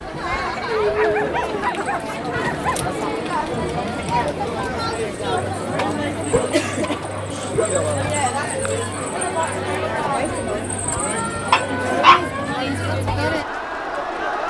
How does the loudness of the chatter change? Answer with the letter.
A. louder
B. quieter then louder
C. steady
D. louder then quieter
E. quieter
C.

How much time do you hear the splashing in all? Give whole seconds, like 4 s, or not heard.
not heard.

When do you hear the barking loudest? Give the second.
12 s.